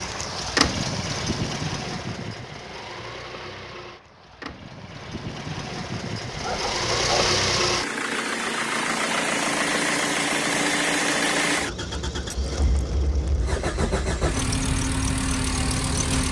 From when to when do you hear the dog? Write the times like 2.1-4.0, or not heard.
6.3-7.4.